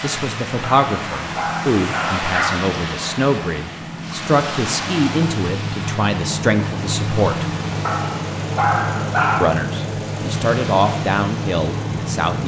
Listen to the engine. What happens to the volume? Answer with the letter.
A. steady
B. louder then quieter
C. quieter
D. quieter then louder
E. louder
E.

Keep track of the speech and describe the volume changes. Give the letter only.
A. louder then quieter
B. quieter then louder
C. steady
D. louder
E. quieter
C.